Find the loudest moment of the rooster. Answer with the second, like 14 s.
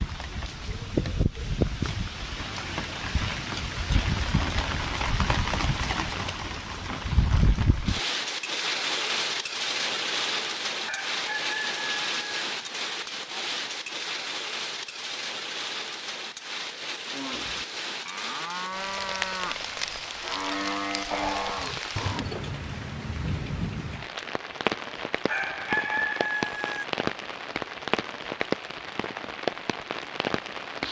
26 s.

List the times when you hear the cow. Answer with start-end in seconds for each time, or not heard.
17.1-22.6.